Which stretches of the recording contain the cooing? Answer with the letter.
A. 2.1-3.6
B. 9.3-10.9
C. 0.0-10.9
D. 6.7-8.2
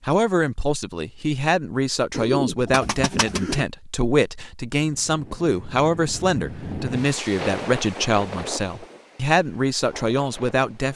A.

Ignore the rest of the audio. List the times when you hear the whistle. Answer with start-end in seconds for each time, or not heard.
not heard.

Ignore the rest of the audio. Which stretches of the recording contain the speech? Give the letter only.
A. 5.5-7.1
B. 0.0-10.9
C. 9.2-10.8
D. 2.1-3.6
B.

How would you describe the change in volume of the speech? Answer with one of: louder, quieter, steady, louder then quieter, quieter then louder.
steady.